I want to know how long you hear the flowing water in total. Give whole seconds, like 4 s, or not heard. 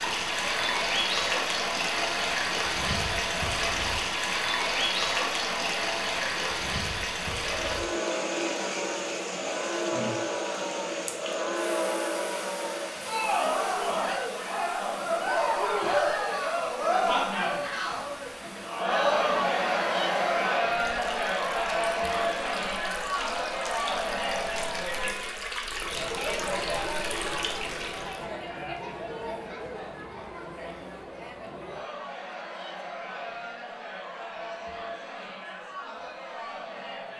28 s.